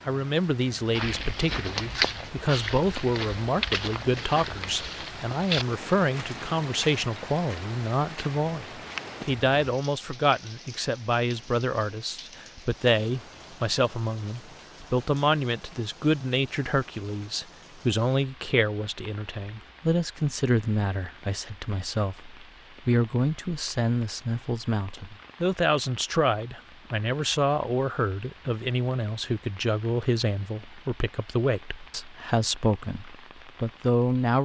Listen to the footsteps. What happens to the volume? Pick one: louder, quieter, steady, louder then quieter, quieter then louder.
quieter.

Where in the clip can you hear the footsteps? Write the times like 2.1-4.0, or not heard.
0.9-9.3.